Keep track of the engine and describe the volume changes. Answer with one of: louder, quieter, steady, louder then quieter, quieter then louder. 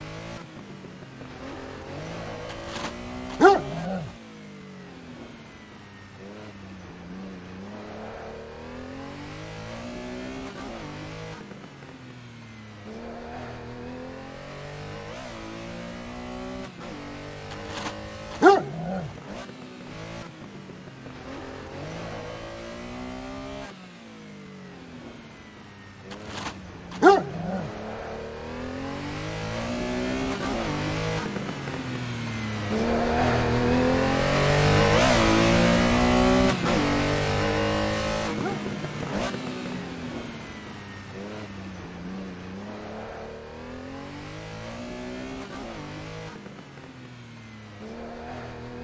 louder then quieter.